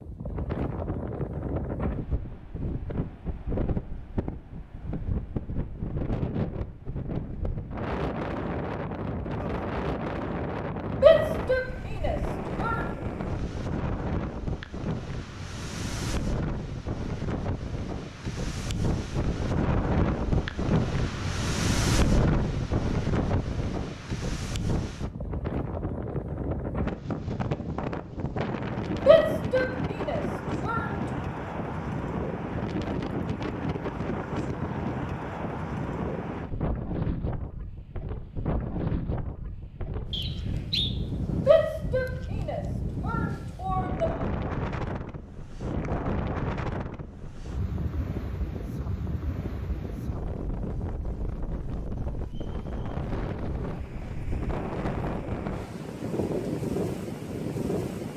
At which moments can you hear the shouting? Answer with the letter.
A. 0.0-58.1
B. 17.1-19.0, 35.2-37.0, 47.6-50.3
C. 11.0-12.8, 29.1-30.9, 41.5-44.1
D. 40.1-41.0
C.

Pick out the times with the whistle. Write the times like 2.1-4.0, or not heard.
40.1-41.0.